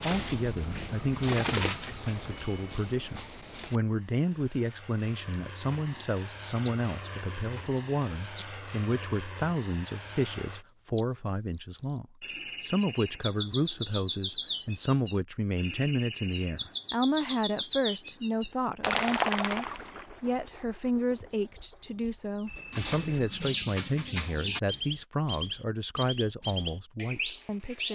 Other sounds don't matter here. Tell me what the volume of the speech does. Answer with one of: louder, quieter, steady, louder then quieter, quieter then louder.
steady.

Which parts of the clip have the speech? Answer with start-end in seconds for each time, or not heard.
0.0-27.9.